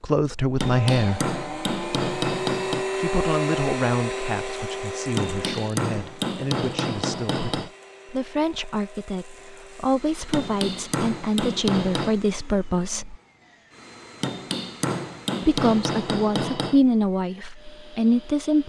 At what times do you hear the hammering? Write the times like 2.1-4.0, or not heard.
0.6-2.9, 5.2-7.7, 10.3-12.2, 14.2-16.8.